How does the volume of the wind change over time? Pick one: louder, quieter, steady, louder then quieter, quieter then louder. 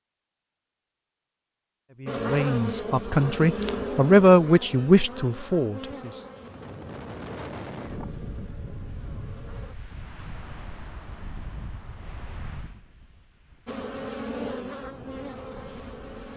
quieter.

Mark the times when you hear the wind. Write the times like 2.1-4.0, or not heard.
6.3-16.3.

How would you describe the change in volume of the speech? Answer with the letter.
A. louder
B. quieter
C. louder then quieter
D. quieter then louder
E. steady
C.